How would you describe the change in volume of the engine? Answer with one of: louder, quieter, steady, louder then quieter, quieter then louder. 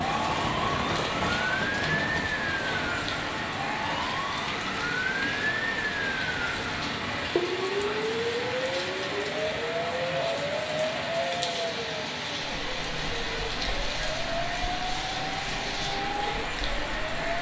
quieter.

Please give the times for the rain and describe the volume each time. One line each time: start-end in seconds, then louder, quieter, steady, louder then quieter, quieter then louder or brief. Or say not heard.
0.0-17.3 steady.